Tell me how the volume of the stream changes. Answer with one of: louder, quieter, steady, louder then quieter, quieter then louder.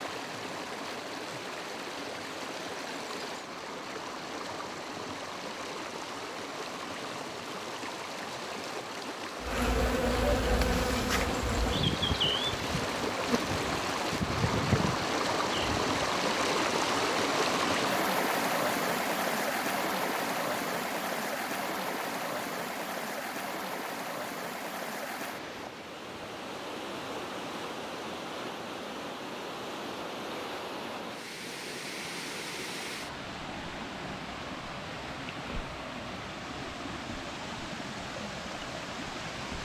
louder then quieter.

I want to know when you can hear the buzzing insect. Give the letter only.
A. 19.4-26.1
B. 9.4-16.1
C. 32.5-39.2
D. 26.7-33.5
B.